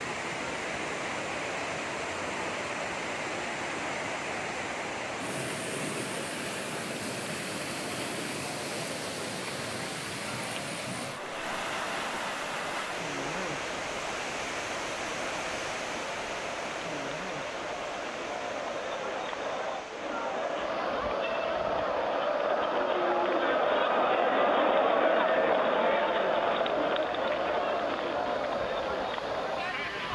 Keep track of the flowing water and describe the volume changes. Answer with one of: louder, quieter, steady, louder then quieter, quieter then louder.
quieter.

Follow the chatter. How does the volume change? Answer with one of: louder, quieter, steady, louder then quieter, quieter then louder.
louder.